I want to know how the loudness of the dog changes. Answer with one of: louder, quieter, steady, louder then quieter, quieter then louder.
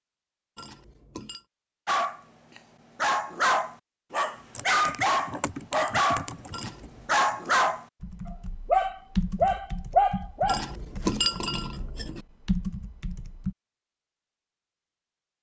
steady.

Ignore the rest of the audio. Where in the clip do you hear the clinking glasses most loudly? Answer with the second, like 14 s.
11 s.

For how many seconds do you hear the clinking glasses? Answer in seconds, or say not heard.
3 s.